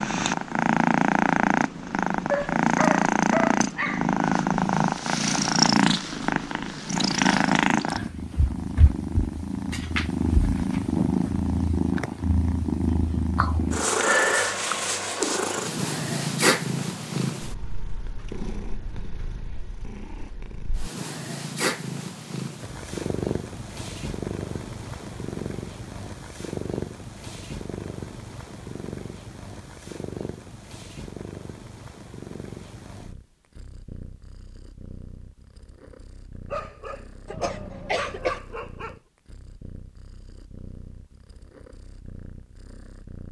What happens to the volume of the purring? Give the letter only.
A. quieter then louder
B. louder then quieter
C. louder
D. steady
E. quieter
E.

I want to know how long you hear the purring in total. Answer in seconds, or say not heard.
43 s.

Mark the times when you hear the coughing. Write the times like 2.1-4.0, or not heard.
37.2-38.4.